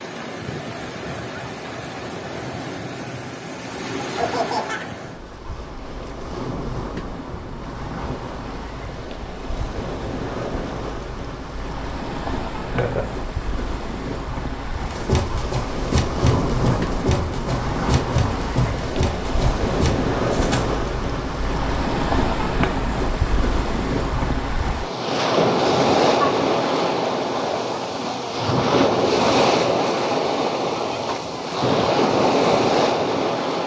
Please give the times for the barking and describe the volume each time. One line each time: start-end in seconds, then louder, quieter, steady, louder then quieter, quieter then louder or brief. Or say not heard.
not heard.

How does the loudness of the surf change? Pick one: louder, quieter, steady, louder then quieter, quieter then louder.
louder.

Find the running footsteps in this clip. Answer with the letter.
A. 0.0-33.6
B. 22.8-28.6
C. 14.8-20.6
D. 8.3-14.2
C.